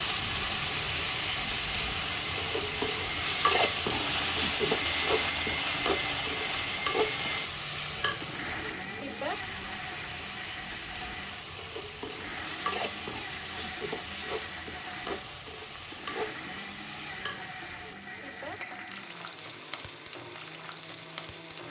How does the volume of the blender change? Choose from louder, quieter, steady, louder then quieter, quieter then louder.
quieter.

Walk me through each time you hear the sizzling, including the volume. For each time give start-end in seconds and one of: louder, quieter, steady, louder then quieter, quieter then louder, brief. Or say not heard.
0.0-21.6 quieter.